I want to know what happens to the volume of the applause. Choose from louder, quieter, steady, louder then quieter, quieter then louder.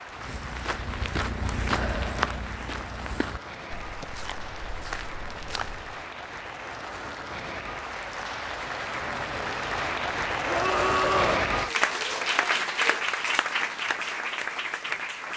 louder.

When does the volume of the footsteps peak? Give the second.
2 s.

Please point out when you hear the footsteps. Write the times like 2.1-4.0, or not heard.
0.1-6.0.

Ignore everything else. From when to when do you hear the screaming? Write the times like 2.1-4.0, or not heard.
10.4-11.4.